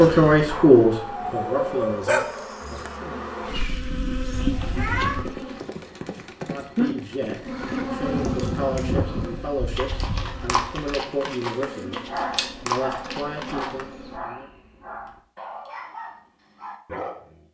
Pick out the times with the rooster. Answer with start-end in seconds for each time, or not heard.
not heard.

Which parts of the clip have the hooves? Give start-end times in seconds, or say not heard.
4.8-13.8.